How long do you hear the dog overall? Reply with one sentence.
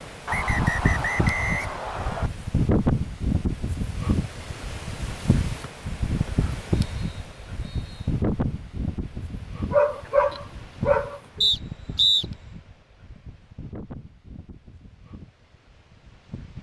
You can hear the dog for 2 seconds altogether.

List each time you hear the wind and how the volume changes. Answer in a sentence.
The wind can be heard from 0.0 to 16.5 s, getting quieter.